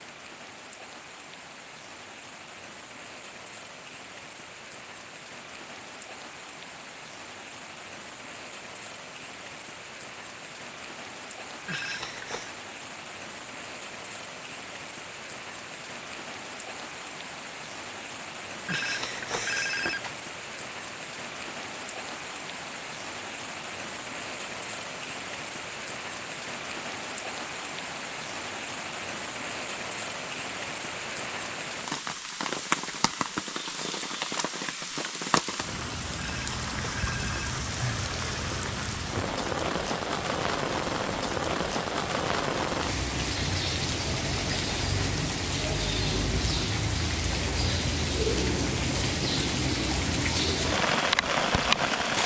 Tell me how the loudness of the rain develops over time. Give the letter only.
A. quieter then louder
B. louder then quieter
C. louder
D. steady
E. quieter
C.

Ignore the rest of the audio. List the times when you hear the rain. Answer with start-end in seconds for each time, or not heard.
0.0-52.2.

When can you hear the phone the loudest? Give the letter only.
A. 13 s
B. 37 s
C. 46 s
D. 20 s
D.